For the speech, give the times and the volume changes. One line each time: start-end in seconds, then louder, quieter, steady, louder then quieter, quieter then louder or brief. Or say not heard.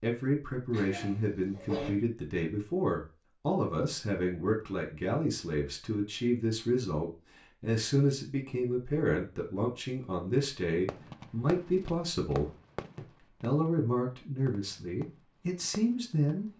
0.0-16.5 steady.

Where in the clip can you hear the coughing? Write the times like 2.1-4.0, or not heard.
0.7-1.9.